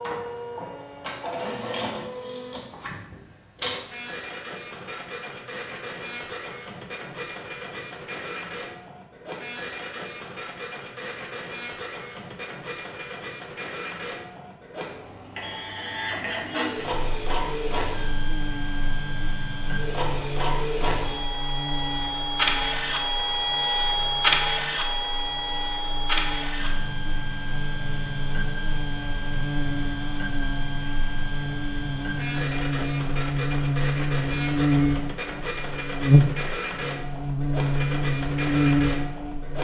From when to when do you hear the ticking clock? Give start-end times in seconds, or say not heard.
not heard.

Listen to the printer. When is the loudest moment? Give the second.
24 s.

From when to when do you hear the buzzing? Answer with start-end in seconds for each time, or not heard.
16.8-39.6.